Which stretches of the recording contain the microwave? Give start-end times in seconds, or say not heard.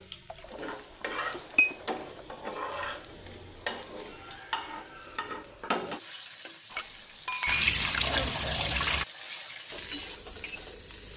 not heard.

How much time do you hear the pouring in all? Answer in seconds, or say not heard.
4 s.